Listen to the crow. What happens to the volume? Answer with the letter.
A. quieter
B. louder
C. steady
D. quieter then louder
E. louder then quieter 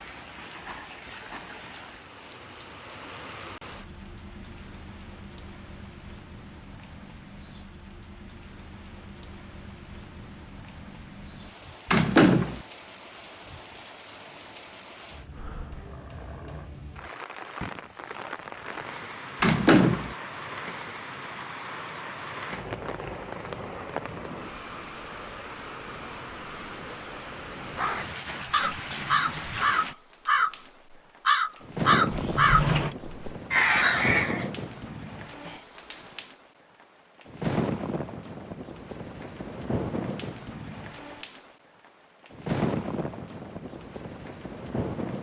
B.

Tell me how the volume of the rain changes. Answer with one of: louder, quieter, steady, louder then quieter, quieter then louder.
louder.